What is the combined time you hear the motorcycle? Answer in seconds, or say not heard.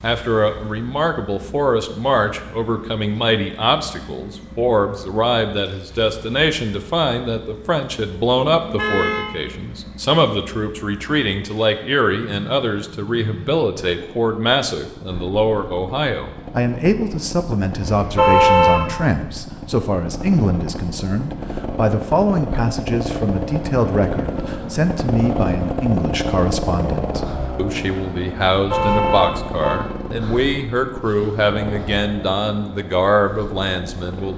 34 s.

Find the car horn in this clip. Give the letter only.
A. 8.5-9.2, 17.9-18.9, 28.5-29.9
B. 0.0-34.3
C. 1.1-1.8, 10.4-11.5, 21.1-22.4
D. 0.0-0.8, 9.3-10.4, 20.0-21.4
A.